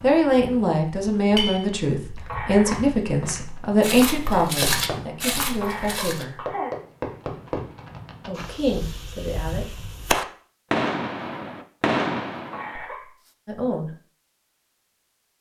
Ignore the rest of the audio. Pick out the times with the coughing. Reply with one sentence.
The coughing can be heard from 2.2 to 2.9 s, from 5.6 to 7.2 s and from 12.5 to 13.1 s.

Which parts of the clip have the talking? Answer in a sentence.
You can hear the talking from 0.0 to 6.4 s, from 8.2 to 9.8 s and from 13.4 to 13.9 s.